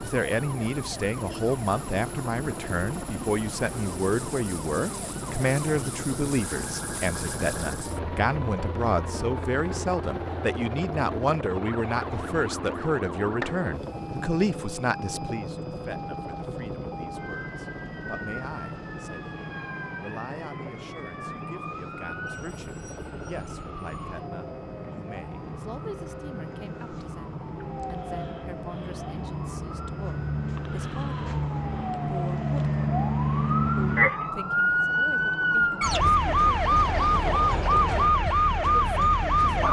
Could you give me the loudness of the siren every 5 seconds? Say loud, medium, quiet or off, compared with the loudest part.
quiet, quiet, quiet, quiet, quiet, quiet, loud, loud.